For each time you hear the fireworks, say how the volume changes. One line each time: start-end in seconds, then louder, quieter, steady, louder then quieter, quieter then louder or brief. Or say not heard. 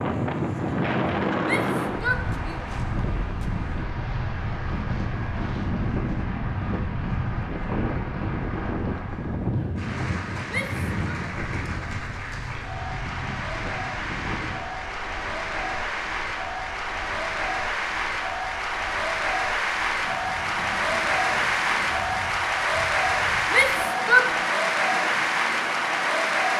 not heard.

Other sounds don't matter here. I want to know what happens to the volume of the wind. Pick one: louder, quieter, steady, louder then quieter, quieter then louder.
quieter.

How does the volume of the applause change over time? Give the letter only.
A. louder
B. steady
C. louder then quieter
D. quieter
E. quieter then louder
A.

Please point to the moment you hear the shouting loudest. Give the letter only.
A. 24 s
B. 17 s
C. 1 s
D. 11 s
A.